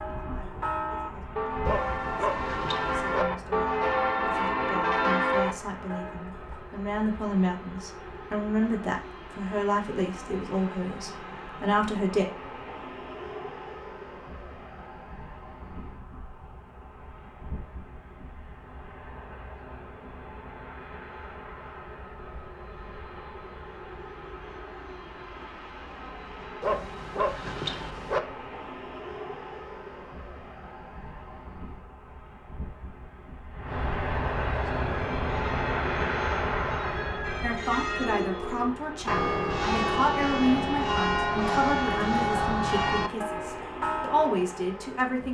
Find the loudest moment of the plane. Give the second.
36 s.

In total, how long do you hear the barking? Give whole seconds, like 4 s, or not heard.
3 s.